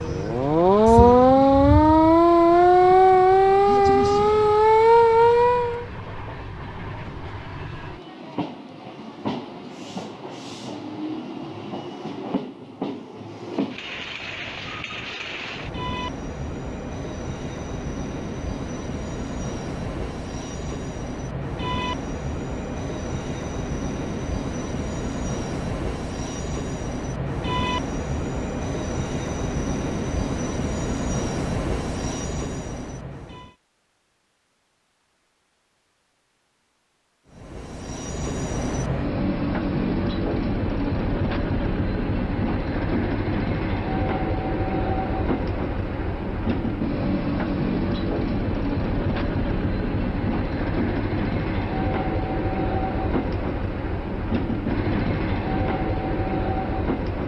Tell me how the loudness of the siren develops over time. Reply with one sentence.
The volume of the siren stays about the same.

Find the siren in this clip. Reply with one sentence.
The siren can be heard from 0.0 to 5.8 s.